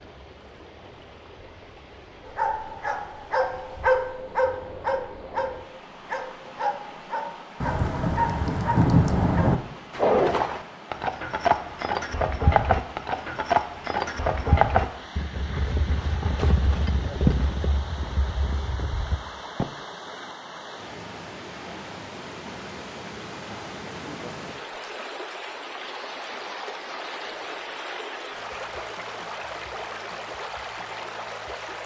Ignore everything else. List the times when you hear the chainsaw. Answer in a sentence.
You can't hear the chainsaw here.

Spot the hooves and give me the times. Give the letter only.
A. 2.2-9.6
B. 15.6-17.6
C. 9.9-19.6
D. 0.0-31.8
C.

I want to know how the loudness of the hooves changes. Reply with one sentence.
The loudness of the hooves goes down.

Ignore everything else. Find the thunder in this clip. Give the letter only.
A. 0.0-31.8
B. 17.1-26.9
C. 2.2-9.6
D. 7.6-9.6
D.